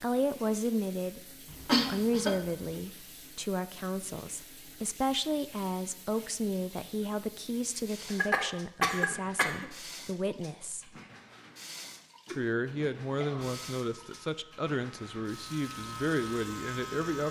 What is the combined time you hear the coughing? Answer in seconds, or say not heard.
4 s.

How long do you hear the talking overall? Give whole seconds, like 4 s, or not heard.
16 s.